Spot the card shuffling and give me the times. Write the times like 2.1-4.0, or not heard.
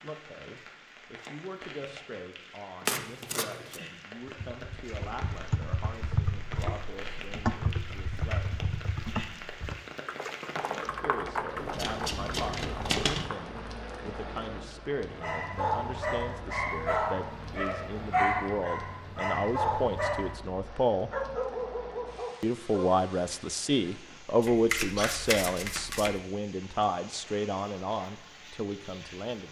2.9-3.8, 11.6-13.3, 24.4-26.1.